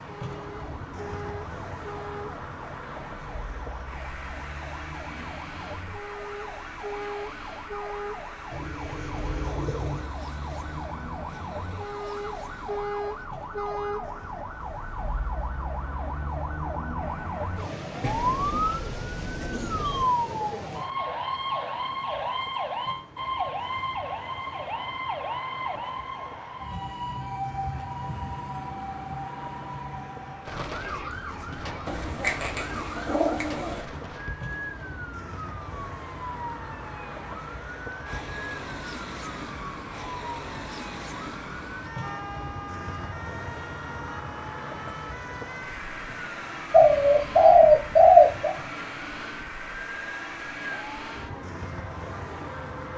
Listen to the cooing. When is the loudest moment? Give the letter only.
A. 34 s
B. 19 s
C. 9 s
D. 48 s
D.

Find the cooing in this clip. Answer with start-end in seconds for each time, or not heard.
8.5-10.1, 18.0-20.1, 31.9-33.9, 46.7-48.5.